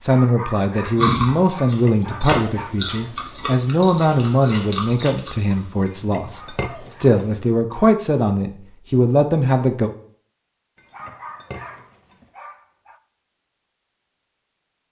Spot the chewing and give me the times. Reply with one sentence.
You can hear the chewing from 0.9 to 5.6 s.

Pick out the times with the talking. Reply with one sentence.
The talking can be heard from 0.0 to 9.9 s.